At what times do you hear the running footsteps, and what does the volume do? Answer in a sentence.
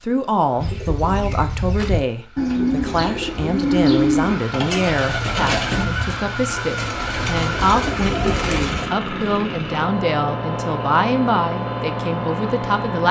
You can't hear the running footsteps here.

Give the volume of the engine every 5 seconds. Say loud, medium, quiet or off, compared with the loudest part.
medium, loud, loud.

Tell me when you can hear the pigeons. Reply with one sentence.
You can hear the pigeons from 0.6 to 8.9 s.